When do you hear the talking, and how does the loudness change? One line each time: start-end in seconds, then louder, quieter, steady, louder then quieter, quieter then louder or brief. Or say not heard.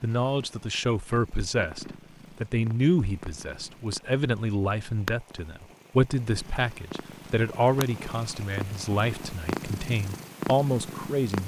0.0-11.4 steady.